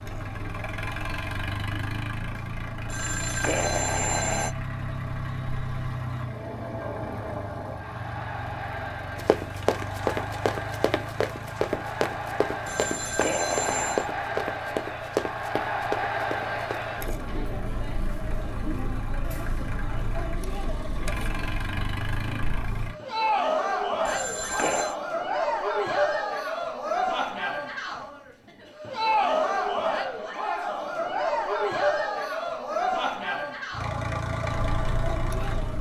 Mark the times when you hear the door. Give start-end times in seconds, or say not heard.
not heard.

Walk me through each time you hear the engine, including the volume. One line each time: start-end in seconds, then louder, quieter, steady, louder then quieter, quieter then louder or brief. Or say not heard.
0.0-23.0 quieter then louder
33.7-35.7 brief.